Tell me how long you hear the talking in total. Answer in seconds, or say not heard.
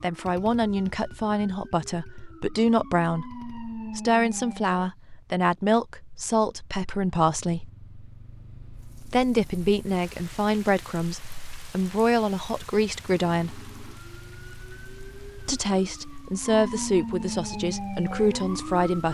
16 s.